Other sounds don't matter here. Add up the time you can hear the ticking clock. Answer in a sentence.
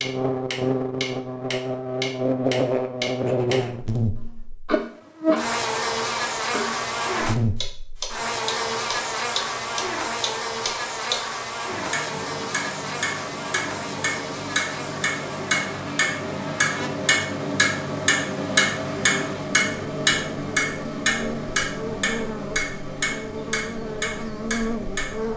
You can hear the ticking clock for 25 seconds altogether.